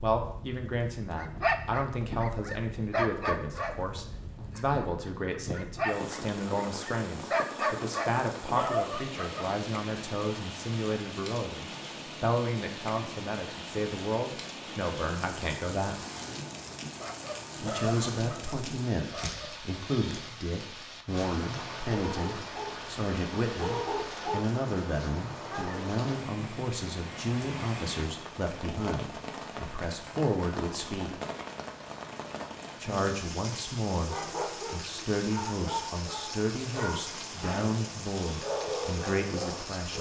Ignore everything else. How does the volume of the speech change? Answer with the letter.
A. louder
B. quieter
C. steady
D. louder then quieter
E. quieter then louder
C.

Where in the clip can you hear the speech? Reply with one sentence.
The speech can be heard from 0.0 to 16.0 s, from 17.6 to 31.2 s and from 32.8 to 39.9 s.